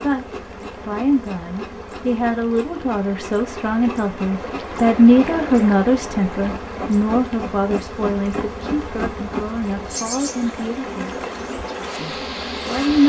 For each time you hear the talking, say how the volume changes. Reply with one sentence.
You can hear the talking from 0.0 to 11.2 s, getting louder then quieter; and briefly from 11.9 to 13.0 s.